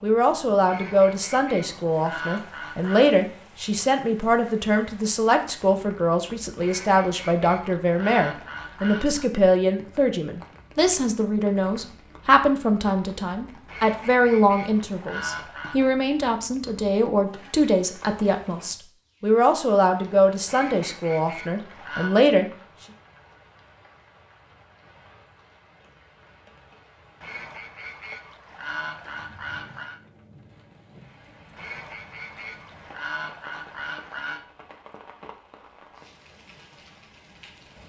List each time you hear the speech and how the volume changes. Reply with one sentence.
The speech can be heard from 0.0 to 22.4 s, at a steady volume.